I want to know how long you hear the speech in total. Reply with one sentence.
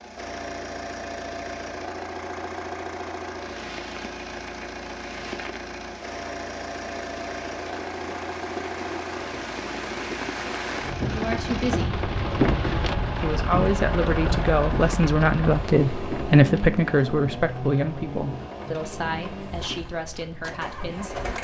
You can hear the speech for 9 seconds altogether.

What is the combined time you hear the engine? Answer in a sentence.
You can hear the engine for 21 seconds altogether.